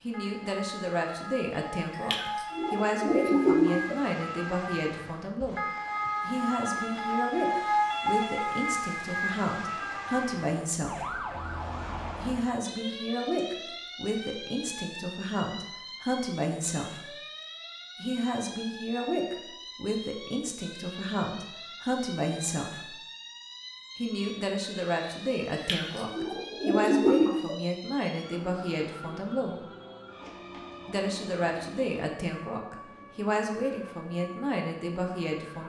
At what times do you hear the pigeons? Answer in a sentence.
You can hear the pigeons from 1.9 to 4.0 s and from 25.5 to 27.6 s.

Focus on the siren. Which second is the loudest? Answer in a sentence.
The loudest moment of the siren is at 8 seconds.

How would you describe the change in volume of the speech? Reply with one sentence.
The loudness of the speech stays about the same.